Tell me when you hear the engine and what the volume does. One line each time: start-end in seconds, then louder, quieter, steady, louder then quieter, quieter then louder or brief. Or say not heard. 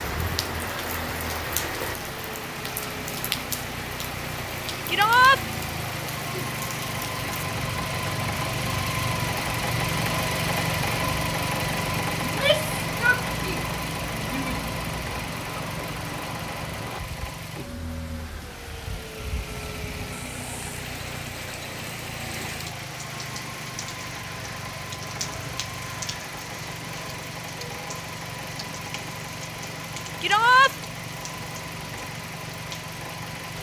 0.0-33.5 louder then quieter.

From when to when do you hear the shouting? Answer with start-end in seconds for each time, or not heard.
4.8-5.4, 12.2-14.6, 30.2-30.8.